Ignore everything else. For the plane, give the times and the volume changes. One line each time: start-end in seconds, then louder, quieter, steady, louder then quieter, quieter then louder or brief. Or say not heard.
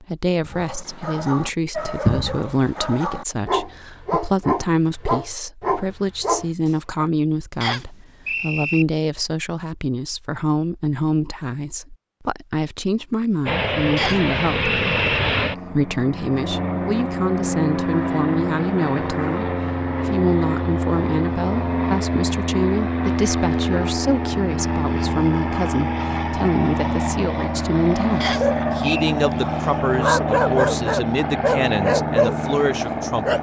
13.4-33.3 steady.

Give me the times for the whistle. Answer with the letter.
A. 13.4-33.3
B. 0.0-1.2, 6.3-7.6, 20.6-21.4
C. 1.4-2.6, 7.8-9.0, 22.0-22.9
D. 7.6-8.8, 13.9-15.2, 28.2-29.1
D.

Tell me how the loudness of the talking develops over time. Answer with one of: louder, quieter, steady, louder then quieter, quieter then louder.
steady.